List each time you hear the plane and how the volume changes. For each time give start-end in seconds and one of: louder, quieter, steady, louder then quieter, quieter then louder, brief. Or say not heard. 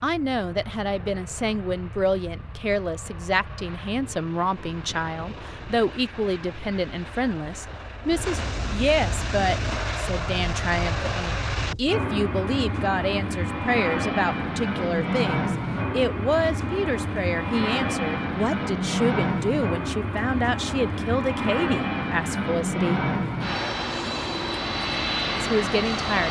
0.0-26.2 louder.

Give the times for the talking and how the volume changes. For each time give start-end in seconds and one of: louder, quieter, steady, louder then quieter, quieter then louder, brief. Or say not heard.
0.0-23.0 steady
25.4-26.2 brief.